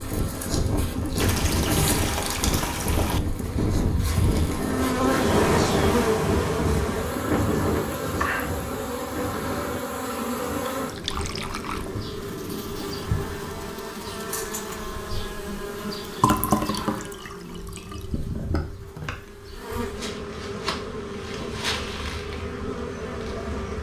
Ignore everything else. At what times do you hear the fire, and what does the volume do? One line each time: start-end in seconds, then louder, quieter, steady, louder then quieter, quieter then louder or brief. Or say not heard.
not heard.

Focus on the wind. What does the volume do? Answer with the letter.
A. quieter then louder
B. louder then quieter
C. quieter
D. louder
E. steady
C.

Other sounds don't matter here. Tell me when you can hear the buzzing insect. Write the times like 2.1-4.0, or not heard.
0.0-23.7.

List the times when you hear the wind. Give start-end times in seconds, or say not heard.
0.0-13.8.